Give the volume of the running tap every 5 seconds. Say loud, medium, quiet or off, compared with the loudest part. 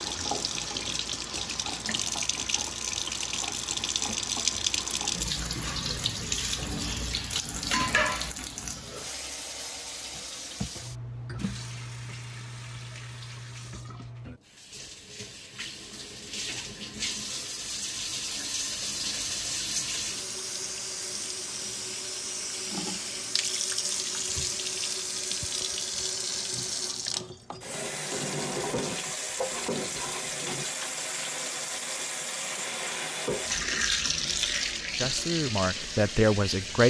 loud, loud, medium, loud, loud, loud, loud, loud.